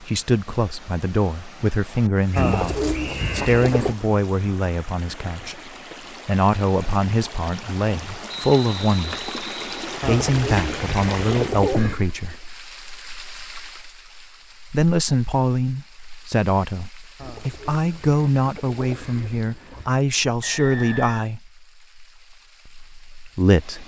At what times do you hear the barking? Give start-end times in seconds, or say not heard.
not heard.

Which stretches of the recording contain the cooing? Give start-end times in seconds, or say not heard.
2.4-4.0, 10.0-12.1, 17.1-19.9.